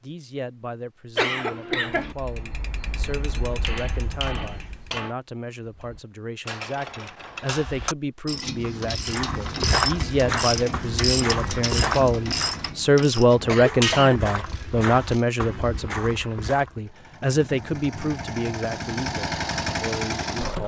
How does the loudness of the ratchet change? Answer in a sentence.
The loudness of the ratchet goes up.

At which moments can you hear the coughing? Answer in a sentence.
You can hear the coughing from 1.1 to 2.1 s and from 13.3 to 14.4 s.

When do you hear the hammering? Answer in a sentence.
The hammering can be heard from 3.6 to 5.2 s.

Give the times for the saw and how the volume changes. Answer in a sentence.
The saw can't be heard in this clip.